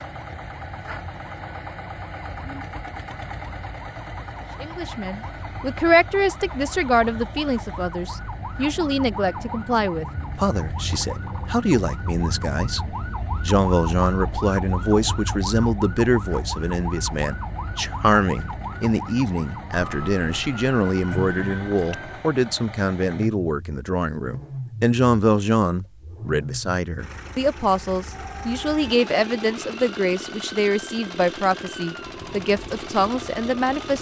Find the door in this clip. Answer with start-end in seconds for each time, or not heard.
21.1-21.9.